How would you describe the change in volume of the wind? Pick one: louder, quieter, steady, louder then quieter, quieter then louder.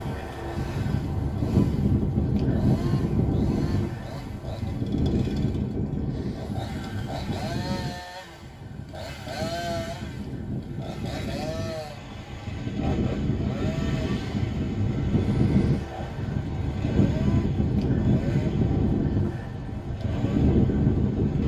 quieter then louder.